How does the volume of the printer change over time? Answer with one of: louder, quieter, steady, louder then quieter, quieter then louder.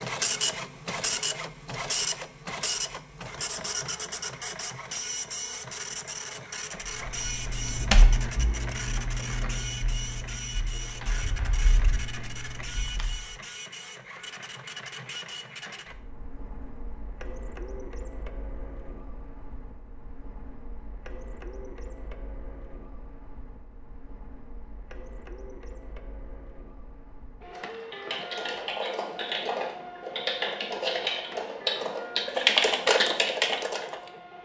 quieter then louder.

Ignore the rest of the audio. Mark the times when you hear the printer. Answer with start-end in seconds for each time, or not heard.
0.0-34.3.